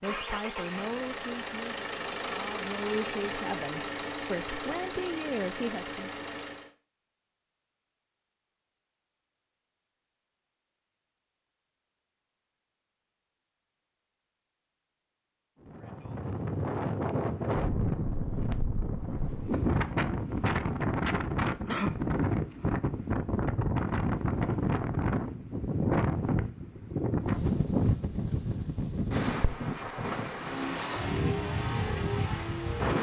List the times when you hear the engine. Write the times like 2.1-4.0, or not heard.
0.0-6.7, 30.4-32.9.